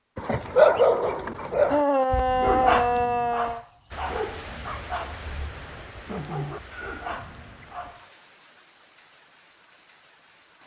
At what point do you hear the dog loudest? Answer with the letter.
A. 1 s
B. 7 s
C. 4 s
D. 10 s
A.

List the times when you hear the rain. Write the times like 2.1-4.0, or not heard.
3.9-10.6.